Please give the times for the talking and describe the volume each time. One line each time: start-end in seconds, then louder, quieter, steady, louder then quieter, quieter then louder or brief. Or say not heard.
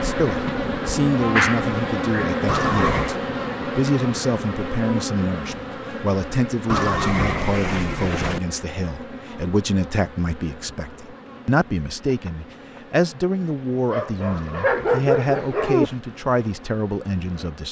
0.0-17.6 steady.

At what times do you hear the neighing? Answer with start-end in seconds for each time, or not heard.
2.5-3.1, 6.7-8.4, 14.3-16.0.